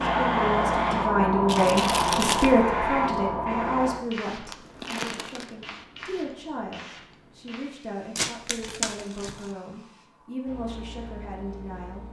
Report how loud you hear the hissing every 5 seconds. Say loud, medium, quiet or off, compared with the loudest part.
loud, quiet, quiet.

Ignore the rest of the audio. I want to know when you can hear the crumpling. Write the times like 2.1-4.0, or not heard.
1.4-2.5, 4.5-5.5, 8.2-9.5.